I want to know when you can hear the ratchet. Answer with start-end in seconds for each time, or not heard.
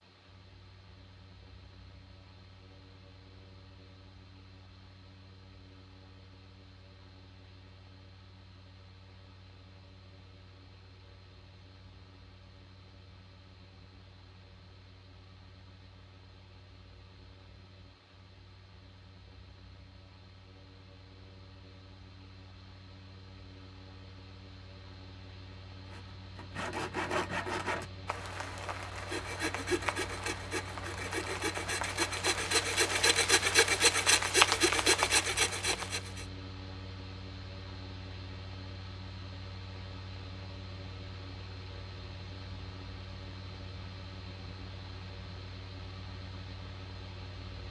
not heard.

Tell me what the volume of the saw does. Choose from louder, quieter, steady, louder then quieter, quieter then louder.
louder.